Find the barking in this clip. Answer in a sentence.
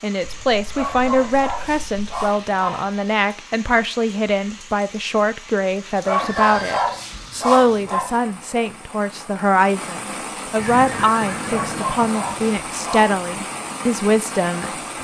You can hear the barking from 0.7 to 2.9 s, from 6.0 to 8.1 s and from 11.4 to 13.2 s.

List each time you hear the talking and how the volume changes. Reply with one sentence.
The talking can be heard from 0.0 to 14.7 s, at a steady volume.